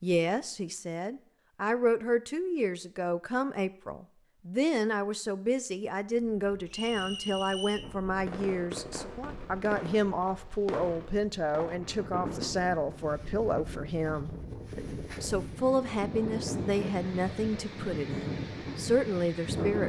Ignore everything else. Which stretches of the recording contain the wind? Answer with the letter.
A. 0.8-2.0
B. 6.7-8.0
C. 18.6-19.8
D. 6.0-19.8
D.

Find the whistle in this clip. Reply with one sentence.
The whistle can be heard from 6.7 to 8.0 s.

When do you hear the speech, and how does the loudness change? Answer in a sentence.
The speech can be heard from 0.0 to 19.8 s, at a steady volume.